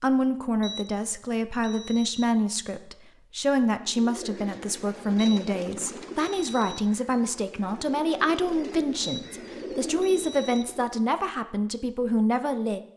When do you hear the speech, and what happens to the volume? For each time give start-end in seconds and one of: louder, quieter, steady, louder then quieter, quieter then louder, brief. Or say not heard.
0.0-12.8 steady.